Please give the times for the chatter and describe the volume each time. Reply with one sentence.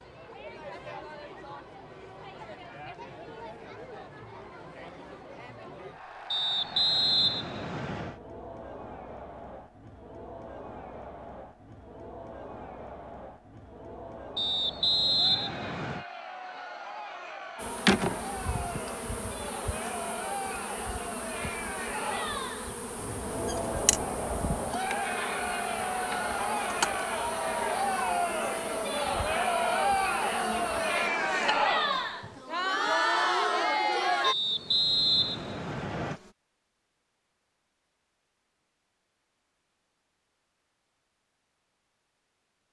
The chatter can be heard from 0.0 to 34.4 s, getting louder.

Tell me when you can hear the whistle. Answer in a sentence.
The whistle can be heard from 6.3 to 8.2 s, from 14.3 to 16.1 s and from 34.2 to 36.2 s.